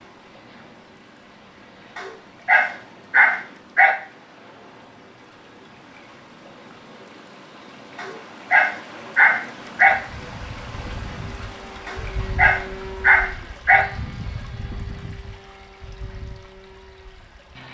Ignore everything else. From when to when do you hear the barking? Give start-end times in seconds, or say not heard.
1.9-3.9, 8.0-9.9, 11.8-13.8.